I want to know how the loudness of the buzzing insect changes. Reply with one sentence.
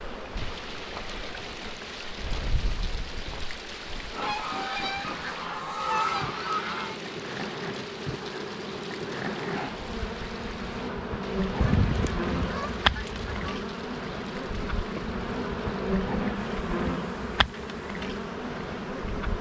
The volume of the buzzing insect goes up.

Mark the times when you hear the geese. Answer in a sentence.
The geese can be heard from 4.2 to 7.0 s and from 11.6 to 13.6 s.